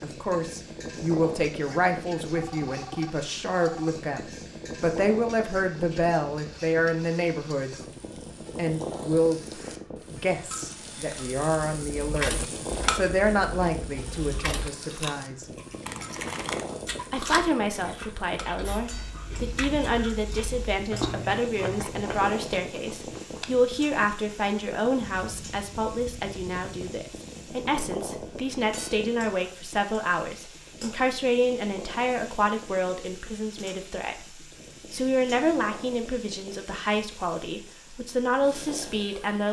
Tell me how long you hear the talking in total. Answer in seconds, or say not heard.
37 s.